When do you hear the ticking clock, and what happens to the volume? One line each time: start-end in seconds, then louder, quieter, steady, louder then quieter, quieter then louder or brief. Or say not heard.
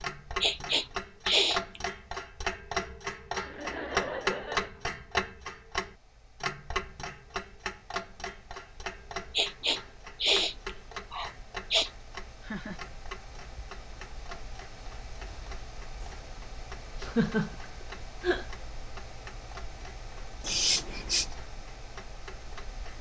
0.0-22.9 quieter.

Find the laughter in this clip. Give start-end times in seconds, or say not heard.
3.5-4.7, 12.4-12.8, 17.0-18.4.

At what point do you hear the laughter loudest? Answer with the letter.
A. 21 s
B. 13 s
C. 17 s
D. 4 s
C.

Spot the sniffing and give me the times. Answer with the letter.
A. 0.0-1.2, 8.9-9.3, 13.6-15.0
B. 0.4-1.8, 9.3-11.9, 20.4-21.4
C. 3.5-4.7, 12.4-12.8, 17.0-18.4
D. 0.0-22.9
B.